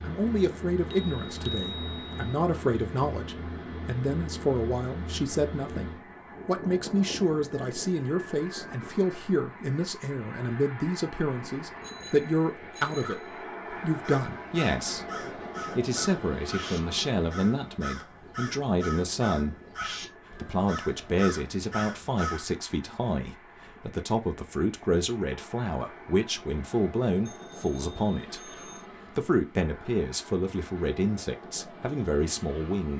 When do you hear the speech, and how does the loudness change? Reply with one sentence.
You can hear the speech from 0.0 to 32.9 s, at a steady volume.